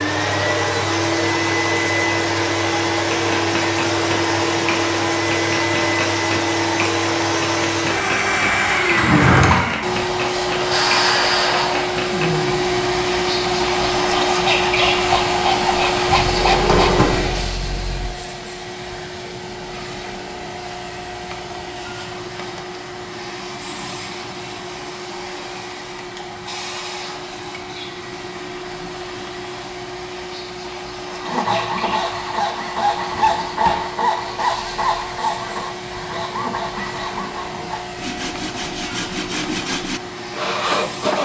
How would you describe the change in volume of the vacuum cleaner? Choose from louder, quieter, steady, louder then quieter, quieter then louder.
quieter.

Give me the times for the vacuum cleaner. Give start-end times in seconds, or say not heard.
0.0-41.2.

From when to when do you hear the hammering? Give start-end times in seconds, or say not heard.
3.1-12.3.